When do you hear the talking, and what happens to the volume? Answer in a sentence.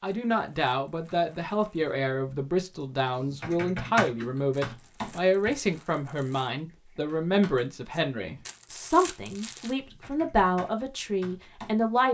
You can hear the talking from 0.0 to 12.0 s, at a steady volume.